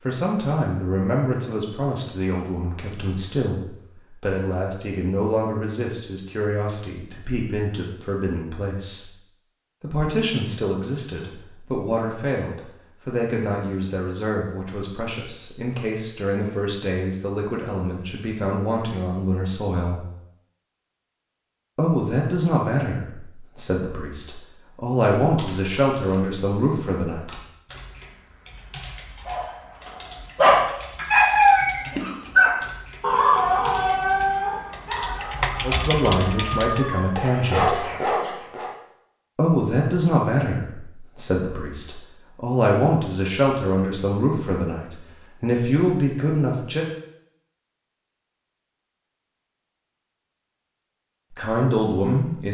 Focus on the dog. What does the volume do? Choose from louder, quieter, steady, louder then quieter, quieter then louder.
quieter then louder.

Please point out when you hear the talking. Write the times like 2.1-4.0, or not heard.
0.0-9.1, 9.8-20.0, 21.8-27.2, 35.6-37.8, 39.4-46.9, 51.4-52.4.